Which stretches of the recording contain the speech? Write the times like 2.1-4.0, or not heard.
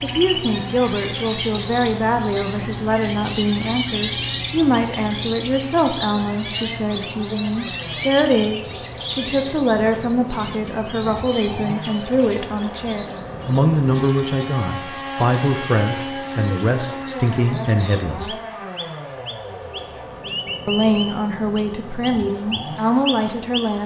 0.0-18.4, 20.6-23.8.